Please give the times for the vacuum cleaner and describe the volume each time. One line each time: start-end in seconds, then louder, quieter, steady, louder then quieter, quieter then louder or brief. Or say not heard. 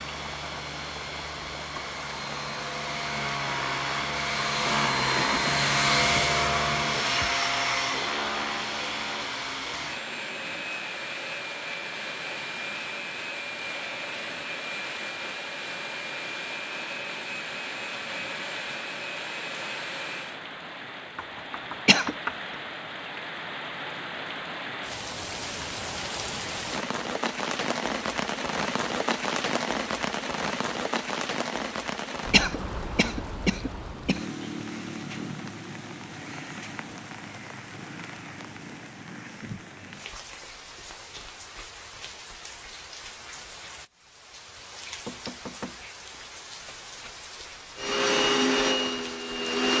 0.0-20.4 louder then quieter
47.8-49.7 brief.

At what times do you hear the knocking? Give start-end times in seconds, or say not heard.
4.7-5.7, 21.1-22.4, 45.0-45.8.